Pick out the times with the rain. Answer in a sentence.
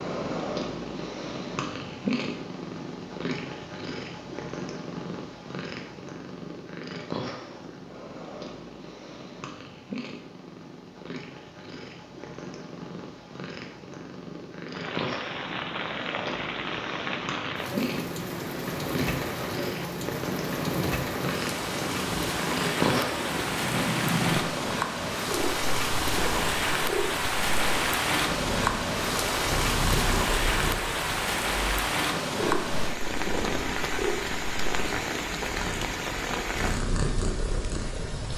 You can hear the rain from 14.7 to 38.3 s.